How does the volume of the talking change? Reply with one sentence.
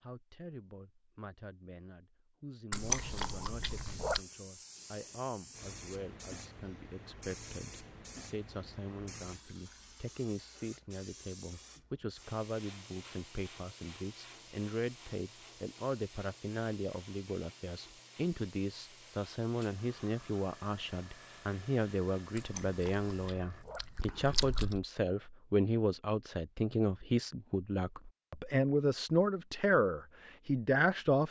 The volume of the talking goes up.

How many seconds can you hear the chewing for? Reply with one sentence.
The chewing can be heard for 4 seconds in total.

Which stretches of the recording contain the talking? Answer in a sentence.
The talking can be heard from 0.0 to 31.2 s.